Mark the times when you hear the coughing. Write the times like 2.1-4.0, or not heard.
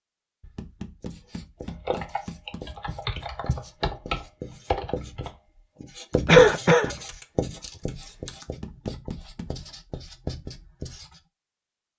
6.2-7.0.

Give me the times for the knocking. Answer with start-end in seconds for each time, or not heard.
0.4-2.6, 8.4-9.6.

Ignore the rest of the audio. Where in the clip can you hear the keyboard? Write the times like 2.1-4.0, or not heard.
1.6-8.4.